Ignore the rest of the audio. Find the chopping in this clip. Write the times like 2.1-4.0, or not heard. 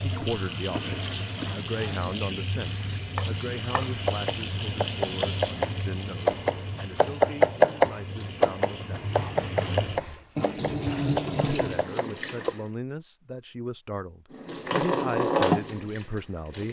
3.1-12.6.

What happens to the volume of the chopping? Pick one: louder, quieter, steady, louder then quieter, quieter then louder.
louder then quieter.